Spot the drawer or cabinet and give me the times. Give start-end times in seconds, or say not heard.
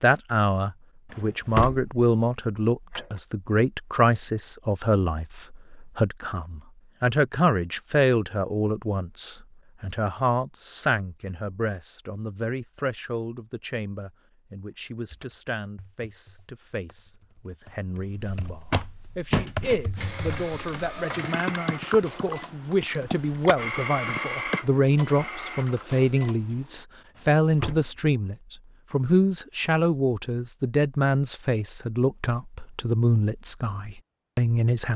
1.1-1.9, 17.9-19.8, 27.1-28.1.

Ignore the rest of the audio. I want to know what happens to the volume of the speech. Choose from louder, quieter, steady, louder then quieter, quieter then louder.
quieter then louder.